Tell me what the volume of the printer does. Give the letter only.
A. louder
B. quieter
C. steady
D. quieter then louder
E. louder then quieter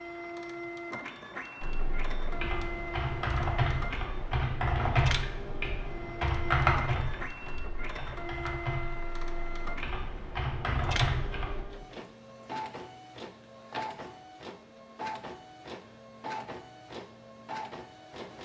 C.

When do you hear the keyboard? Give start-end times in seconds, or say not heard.
1.6-11.7.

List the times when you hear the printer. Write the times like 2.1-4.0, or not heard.
0.0-18.3.